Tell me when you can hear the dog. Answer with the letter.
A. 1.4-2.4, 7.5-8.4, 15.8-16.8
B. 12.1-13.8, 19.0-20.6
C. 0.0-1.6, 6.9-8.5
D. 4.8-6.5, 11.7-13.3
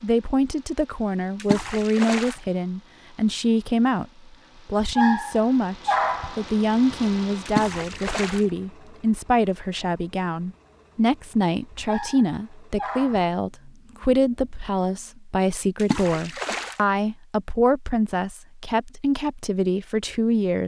D.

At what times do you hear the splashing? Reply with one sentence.
The splashing can be heard from 1.4 to 2.4 s, from 7.5 to 8.4 s and from 15.8 to 16.8 s.